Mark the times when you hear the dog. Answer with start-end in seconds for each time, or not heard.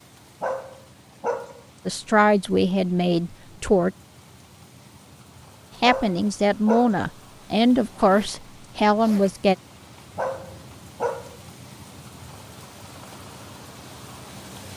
0.4-1.6, 5.8-7.0, 10.2-11.4.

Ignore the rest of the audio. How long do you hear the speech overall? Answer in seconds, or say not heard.
6 s.